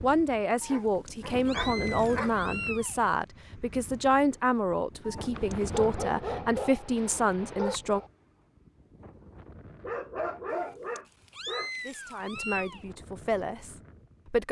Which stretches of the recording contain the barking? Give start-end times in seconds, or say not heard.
0.7-2.4, 5.3-8.1, 9.8-11.7.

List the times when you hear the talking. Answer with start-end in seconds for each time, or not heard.
0.0-8.0, 11.8-14.4.